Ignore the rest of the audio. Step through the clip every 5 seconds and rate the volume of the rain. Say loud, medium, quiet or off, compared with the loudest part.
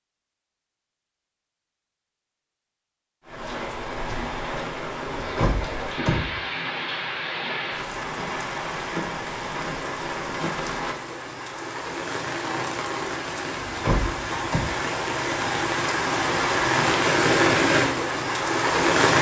medium, medium, medium, loud.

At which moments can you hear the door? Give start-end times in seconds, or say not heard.
5.0-6.4, 13.6-14.7.